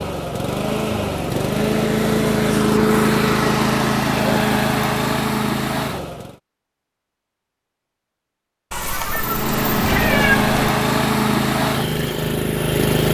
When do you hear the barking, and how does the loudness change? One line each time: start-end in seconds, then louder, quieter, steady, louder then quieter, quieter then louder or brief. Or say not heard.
not heard.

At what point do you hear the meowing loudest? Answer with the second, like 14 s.
10 s.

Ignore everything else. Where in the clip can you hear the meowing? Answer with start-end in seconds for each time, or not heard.
8.7-10.7.